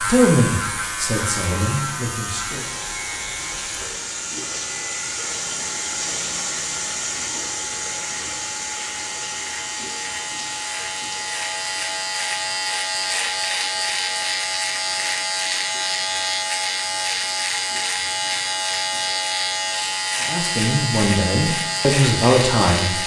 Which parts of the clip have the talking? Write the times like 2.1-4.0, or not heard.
0.0-2.6, 20.2-23.0.